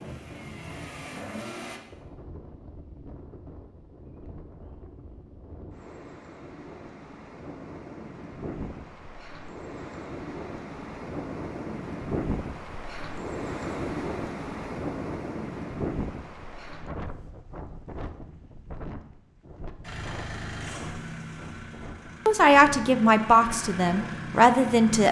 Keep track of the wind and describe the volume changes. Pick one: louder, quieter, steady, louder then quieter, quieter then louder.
louder then quieter.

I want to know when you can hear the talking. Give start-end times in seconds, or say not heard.
22.2-25.0.